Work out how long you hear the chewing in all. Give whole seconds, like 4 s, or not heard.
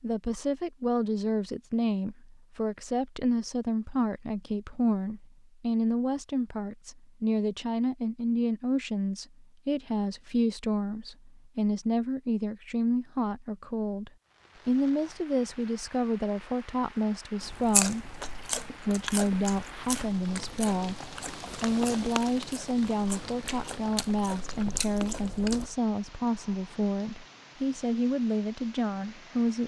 8 s.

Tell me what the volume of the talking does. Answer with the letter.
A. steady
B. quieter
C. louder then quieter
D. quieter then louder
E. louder
A.